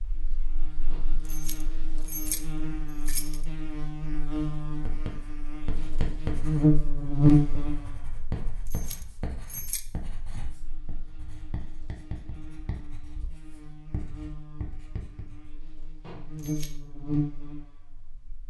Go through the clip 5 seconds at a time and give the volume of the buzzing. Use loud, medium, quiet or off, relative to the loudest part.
quiet, loud, quiet, medium.